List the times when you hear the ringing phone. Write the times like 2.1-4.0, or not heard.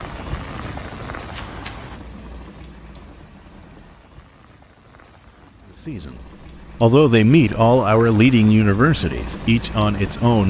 1.3-2.0.